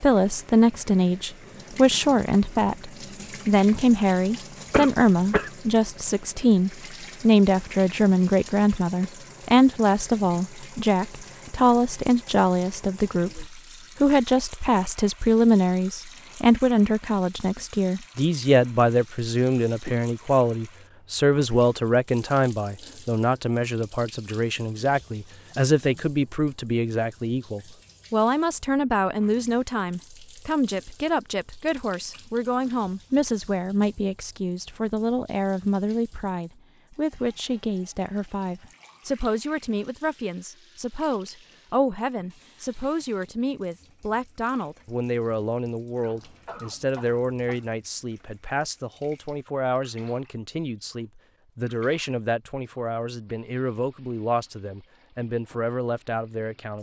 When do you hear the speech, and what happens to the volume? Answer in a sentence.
The speech can be heard from 0.0 to 56.7 s, getting quieter.